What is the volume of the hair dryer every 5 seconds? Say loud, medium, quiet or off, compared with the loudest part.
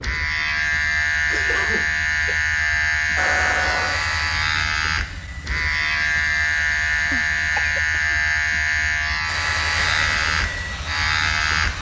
loud, medium, loud.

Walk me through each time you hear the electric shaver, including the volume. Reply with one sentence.
The electric shaver can be heard from 0.0 to 11.7 s, at a steady volume.